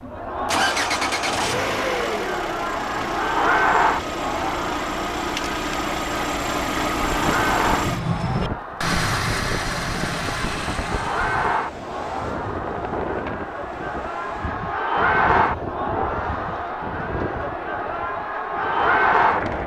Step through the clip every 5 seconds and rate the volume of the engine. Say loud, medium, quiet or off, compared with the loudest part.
loud, loud, medium, off.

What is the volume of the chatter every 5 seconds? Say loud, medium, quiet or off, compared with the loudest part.
loud, medium, medium, loud.